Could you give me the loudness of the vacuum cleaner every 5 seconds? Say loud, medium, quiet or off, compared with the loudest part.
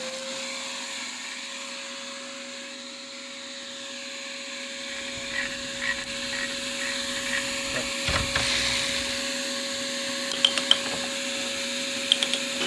medium, loud, loud.